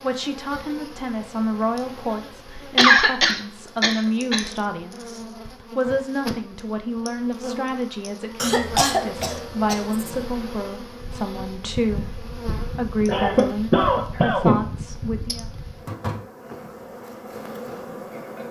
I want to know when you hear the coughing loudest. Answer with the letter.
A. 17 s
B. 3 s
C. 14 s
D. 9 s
B.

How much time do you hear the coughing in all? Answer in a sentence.
The coughing can be heard for 5 seconds in total.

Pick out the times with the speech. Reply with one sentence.
You can hear the speech from 0.0 to 15.4 s.